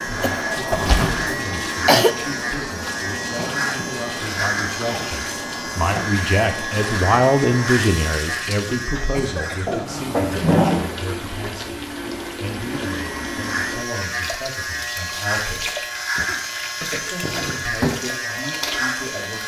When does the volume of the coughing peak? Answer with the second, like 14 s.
2 s.